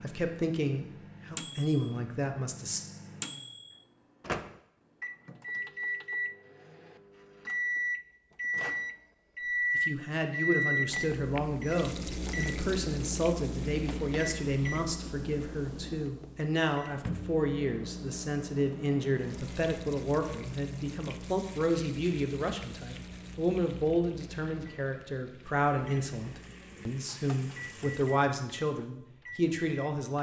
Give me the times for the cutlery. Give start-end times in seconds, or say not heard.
not heard.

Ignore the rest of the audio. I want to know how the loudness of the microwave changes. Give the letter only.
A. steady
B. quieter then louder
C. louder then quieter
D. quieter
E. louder
C.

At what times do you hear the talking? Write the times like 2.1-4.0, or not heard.
0.0-2.8, 9.8-30.1.